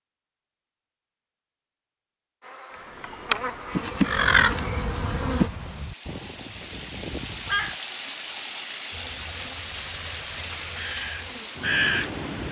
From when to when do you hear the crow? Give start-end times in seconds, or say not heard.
4.0-7.8, 10.8-12.4.